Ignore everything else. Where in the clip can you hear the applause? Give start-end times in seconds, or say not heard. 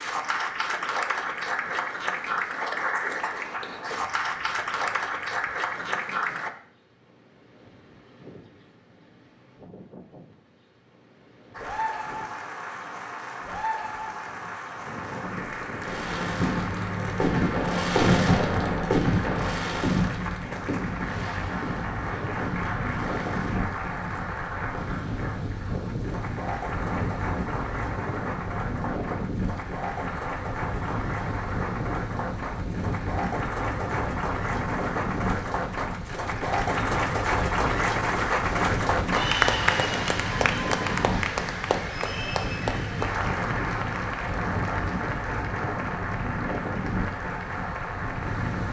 0.0-6.5, 11.5-48.6.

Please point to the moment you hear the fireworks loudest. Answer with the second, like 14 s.
18 s.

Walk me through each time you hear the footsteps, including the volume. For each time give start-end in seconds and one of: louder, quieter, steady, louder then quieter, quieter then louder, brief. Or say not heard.
not heard.